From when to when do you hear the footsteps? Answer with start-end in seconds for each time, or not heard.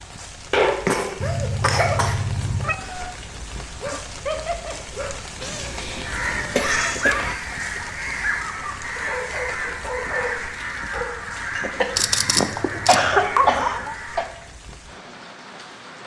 not heard.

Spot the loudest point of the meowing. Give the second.
2 s.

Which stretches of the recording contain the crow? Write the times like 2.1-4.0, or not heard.
6.0-14.5.